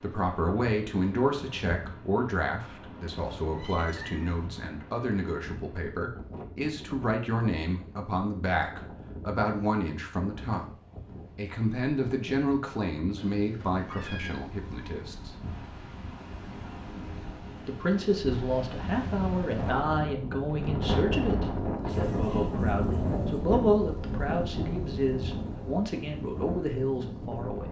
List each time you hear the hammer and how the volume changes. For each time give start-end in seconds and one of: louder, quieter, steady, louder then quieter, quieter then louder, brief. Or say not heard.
not heard.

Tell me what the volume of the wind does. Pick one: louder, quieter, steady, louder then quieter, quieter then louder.
louder.